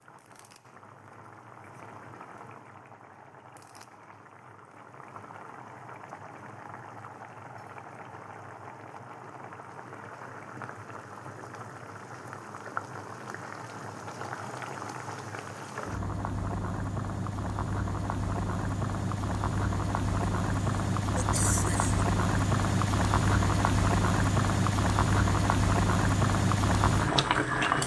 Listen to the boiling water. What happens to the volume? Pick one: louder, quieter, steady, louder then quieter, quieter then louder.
louder.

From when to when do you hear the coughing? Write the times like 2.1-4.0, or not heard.
21.1-22.0.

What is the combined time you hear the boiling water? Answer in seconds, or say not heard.
28 s.